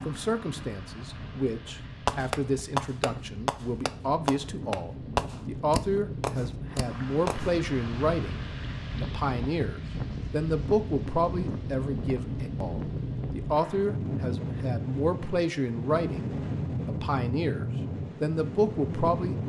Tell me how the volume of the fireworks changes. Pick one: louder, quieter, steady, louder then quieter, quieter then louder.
quieter.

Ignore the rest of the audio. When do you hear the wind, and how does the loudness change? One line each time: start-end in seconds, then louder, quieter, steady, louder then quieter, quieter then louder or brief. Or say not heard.
0.0-19.4 louder.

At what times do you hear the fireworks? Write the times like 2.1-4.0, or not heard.
2.0-7.5.